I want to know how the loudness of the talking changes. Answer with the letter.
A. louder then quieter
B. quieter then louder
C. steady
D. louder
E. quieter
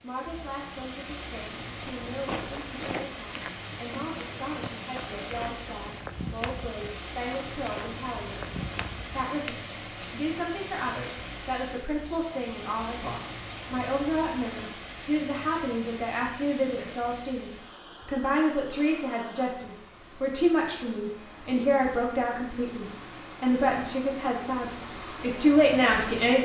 D.